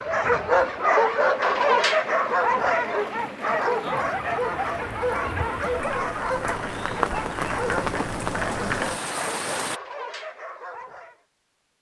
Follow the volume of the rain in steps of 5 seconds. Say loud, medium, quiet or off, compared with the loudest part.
medium, loud, off.